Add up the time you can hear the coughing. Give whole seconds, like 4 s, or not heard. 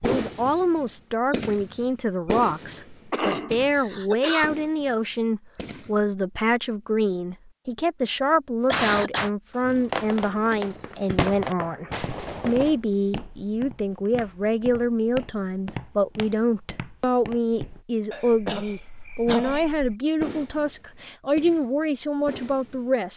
4 s.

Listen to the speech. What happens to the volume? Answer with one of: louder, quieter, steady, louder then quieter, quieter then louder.
steady.